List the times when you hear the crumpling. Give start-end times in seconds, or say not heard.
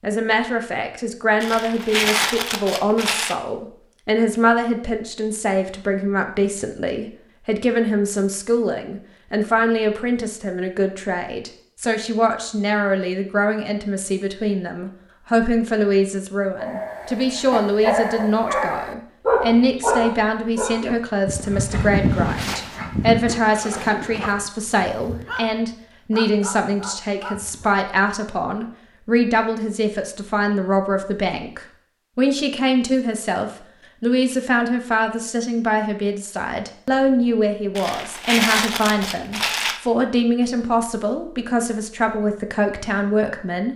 1.4-3.4, 37.8-39.8.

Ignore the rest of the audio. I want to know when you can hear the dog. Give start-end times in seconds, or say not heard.
16.6-27.8.